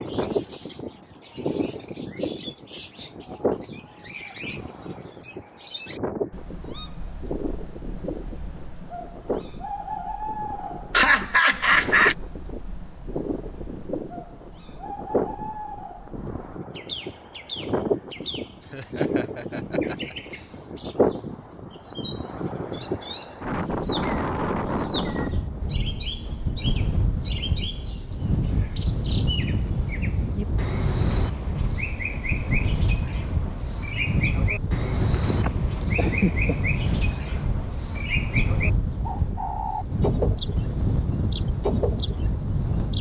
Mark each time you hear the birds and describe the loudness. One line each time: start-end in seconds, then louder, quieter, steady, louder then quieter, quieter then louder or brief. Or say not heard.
0.0-42.9 louder.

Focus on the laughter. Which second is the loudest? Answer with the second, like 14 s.
12 s.